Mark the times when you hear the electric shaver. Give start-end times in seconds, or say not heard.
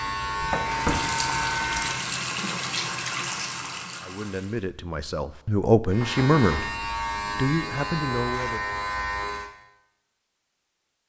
0.0-2.0, 5.9-9.6.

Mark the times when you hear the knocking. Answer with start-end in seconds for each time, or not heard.
0.4-0.9, 6.0-6.7.